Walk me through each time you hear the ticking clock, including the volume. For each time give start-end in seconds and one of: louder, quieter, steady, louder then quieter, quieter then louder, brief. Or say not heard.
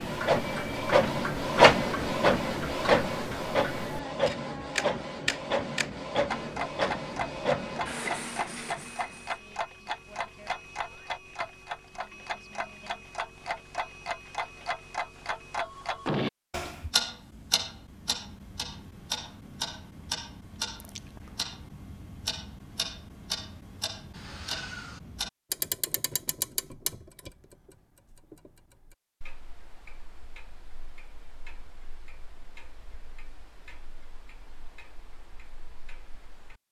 0.0-36.5 quieter.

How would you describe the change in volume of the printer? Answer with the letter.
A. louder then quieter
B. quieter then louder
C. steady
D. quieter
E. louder
D.